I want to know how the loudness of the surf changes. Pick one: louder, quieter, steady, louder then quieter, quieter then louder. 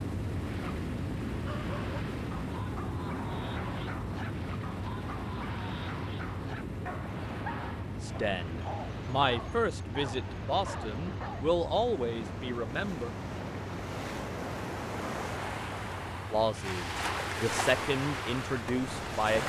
louder.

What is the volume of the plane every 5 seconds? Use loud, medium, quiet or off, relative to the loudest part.
loud, loud, medium, medium.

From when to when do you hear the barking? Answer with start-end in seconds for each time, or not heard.
1.3-11.6.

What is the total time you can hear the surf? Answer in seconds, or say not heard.
19 s.